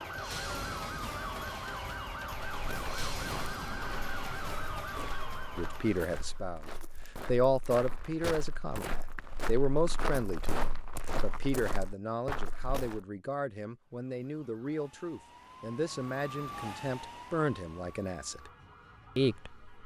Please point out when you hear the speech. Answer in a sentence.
The speech can be heard from 5.5 to 6.6 s, from 7.2 to 18.5 s and from 19.1 to 19.6 s.